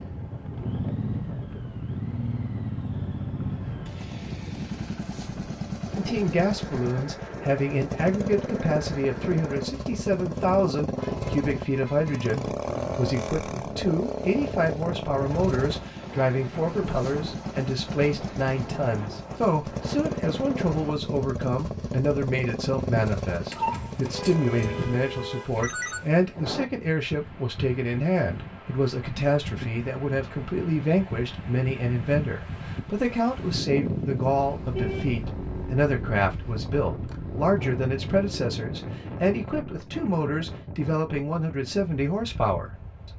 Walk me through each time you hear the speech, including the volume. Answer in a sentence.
You can hear the speech from 6.0 to 43.1 s, at a steady volume.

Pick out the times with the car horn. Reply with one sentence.
You can hear the car horn from 11.0 to 12.4 s, from 23.5 to 26.1 s and from 34.4 to 35.1 s.